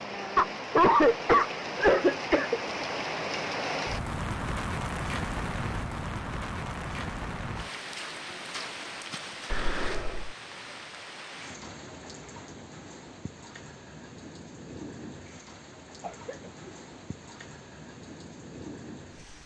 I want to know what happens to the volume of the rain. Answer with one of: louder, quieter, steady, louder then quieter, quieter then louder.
quieter.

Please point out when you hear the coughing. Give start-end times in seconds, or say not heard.
0.3-2.9, 9.4-10.3, 16.0-16.8.